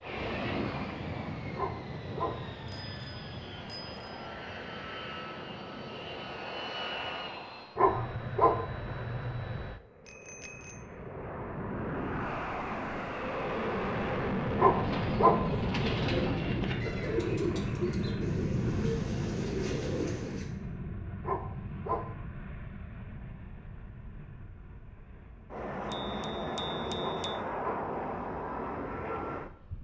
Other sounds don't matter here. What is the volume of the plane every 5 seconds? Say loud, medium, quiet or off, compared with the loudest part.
medium, medium, loud, loud, medium, loud.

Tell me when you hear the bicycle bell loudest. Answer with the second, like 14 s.
27 s.